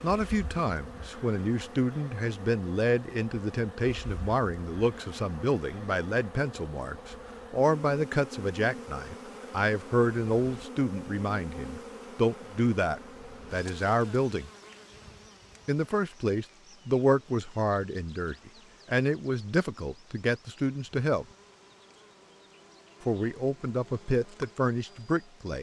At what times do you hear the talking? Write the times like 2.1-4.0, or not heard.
0.0-14.5, 15.7-21.2, 23.1-25.5.